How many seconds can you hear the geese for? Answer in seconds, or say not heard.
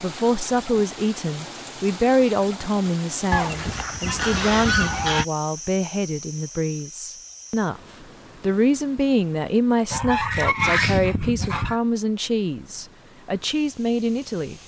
4 s.